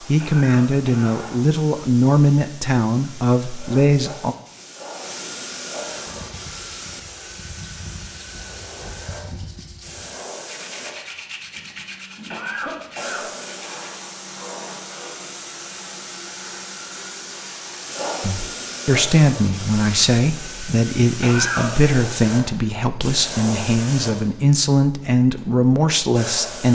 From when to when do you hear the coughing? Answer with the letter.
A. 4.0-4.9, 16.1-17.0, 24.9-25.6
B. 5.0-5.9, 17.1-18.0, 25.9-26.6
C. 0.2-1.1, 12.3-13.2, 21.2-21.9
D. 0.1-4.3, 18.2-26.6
C.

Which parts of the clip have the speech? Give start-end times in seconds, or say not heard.
0.1-4.3, 18.2-26.6.